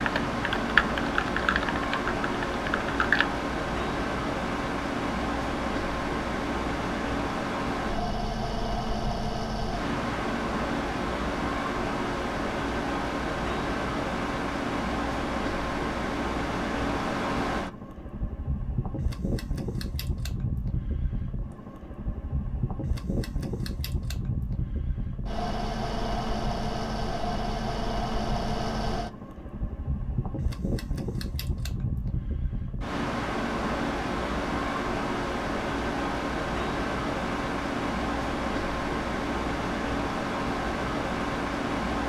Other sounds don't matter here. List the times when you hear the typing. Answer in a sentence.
The typing can be heard from 0.0 to 3.2 s.